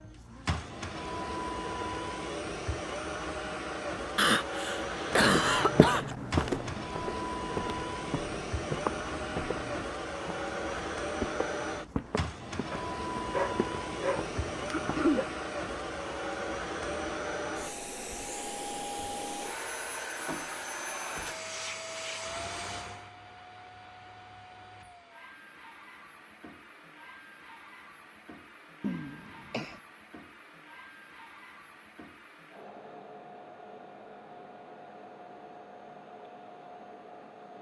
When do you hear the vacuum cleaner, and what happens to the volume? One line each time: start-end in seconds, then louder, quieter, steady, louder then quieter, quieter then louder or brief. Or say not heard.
0.0-37.5 quieter.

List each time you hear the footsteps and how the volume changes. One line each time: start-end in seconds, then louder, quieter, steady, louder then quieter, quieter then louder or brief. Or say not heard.
5.1-15.3 quieter.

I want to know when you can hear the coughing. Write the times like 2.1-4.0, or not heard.
4.2-6.1, 14.7-15.2, 28.8-29.8.